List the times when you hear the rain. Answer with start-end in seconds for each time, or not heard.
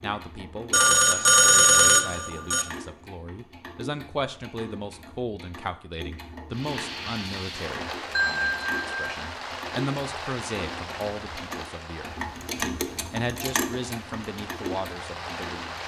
6.5-15.8.